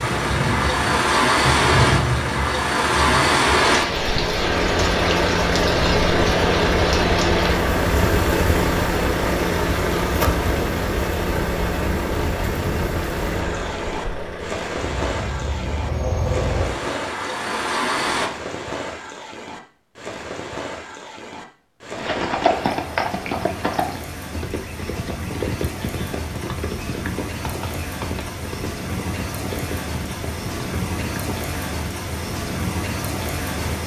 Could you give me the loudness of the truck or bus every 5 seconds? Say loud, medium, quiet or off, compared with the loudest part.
loud, loud, medium, medium, off, off, off.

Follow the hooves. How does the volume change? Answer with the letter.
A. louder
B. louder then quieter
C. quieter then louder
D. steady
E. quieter
E.